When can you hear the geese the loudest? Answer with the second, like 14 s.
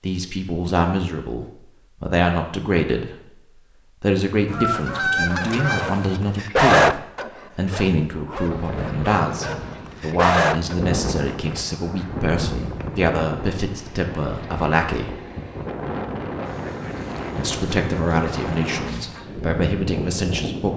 5 s.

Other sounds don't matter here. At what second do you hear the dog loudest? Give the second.
7 s.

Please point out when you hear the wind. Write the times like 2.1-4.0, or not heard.
8.4-20.7.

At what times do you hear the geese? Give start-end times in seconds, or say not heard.
4.5-6.2, 16.4-19.2.